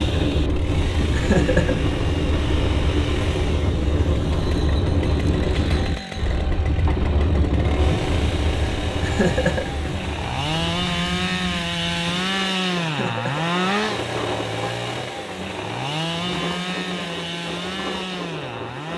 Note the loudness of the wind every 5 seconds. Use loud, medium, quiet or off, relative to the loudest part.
loud, loud, medium, medium.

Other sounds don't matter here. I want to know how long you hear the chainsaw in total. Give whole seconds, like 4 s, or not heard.
19 s.